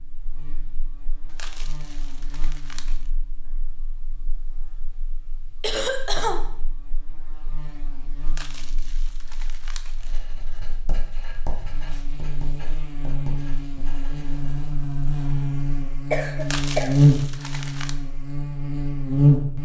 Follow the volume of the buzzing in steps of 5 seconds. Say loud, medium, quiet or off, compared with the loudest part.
quiet, quiet, quiet, loud.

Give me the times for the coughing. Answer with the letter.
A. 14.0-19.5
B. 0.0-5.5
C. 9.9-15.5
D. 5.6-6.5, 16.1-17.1
D.